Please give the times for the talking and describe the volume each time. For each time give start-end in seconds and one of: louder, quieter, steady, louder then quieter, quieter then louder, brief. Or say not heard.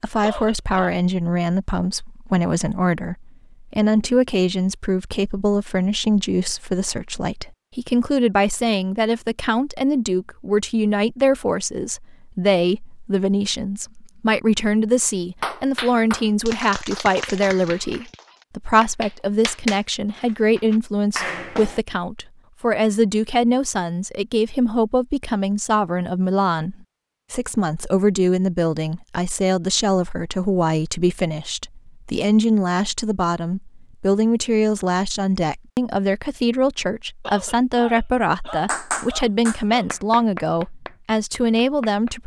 0.0-42.2 steady.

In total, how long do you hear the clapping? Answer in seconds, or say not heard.
10 s.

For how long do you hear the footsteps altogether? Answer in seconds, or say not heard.
not heard.